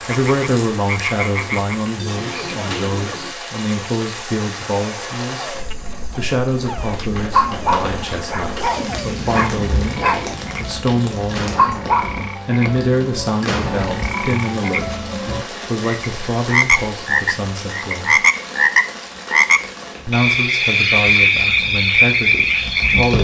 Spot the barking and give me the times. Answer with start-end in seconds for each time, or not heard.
7.1-12.3.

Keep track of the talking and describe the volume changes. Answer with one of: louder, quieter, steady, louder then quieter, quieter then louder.
steady.